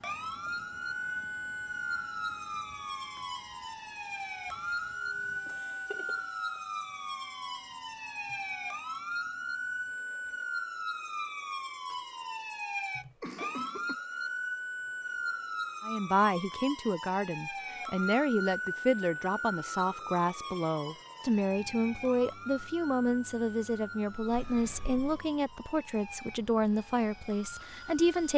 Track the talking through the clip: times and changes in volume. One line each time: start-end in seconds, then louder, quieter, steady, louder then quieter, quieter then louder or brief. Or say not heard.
15.8-28.3 steady.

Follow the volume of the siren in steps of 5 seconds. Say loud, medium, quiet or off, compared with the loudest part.
loud, loud, loud, loud, medium, quiet.